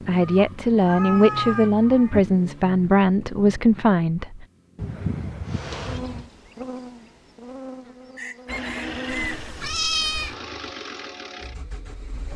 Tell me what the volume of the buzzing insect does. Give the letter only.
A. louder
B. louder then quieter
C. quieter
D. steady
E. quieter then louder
E.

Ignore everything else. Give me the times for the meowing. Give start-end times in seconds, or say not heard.
0.2-2.2, 4.8-6.2, 9.1-10.3.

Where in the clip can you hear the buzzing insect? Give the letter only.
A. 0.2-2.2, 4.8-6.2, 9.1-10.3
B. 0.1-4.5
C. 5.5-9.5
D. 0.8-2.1
C.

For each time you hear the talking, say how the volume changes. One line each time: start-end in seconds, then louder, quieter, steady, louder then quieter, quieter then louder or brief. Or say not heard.
0.1-4.5 steady.